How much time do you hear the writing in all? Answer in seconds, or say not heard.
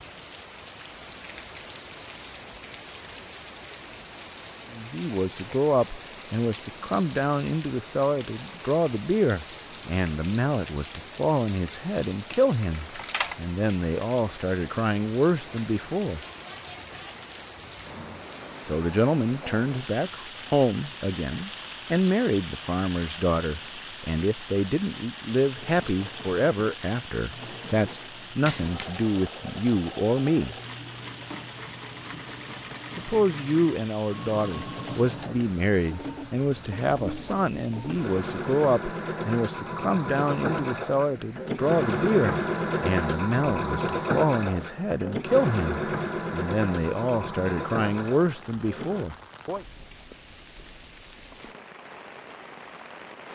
not heard.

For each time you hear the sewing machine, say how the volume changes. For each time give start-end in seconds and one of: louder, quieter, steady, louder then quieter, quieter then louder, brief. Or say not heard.
25.5-49.0 louder.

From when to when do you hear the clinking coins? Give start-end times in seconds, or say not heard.
12.6-13.3, 28.4-29.1.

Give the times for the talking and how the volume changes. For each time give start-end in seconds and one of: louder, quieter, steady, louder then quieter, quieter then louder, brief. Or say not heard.
4.7-16.2 steady
18.6-30.6 steady
33.0-49.6 steady.